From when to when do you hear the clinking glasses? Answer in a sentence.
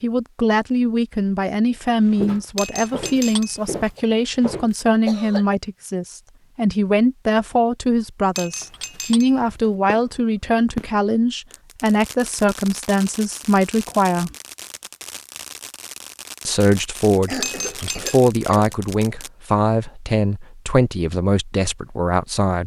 You can hear the clinking glasses from 2.5 to 4.0 s, from 8.3 to 9.7 s and from 17.4 to 18.1 s.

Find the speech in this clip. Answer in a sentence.
The speech can be heard from 0.0 to 14.3 s and from 16.4 to 22.6 s.